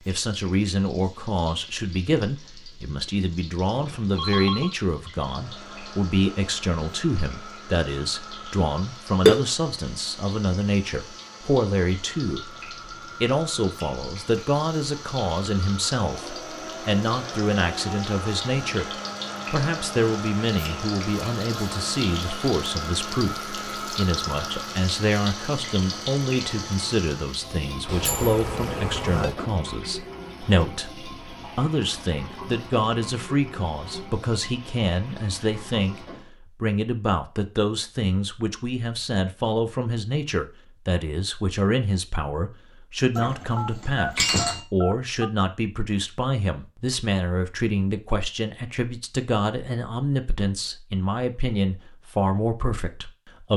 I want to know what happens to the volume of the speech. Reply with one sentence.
The volume of the speech stays about the same.